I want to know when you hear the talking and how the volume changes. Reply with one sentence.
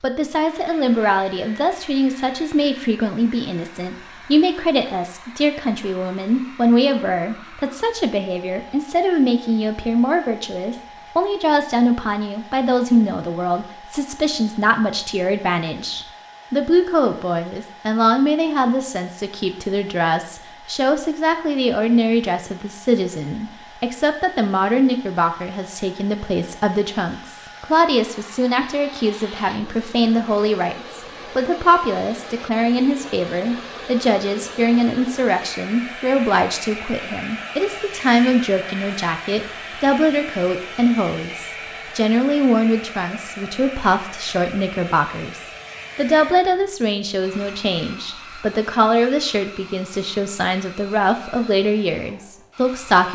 The talking can be heard from 0.0 to 53.1 s, at a steady volume.